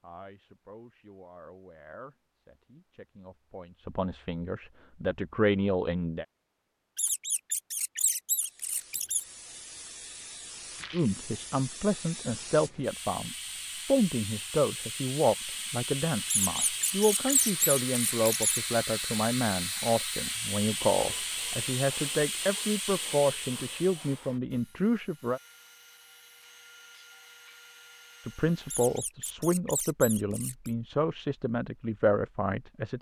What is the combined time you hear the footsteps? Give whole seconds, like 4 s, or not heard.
not heard.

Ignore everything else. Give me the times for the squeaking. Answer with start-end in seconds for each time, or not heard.
7.0-9.2, 16.4-18.6, 28.6-30.7.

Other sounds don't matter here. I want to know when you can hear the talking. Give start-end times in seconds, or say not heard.
0.0-6.2, 10.9-25.4, 28.2-32.9.